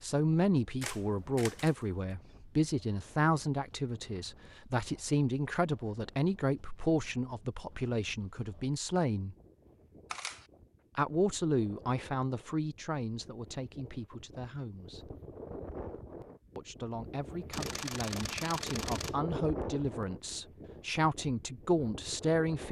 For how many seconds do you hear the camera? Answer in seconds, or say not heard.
3 s.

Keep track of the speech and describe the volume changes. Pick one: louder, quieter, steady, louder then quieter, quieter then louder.
quieter then louder.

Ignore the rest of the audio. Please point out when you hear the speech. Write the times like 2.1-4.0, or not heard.
0.0-9.3, 10.9-15.1, 16.6-22.6.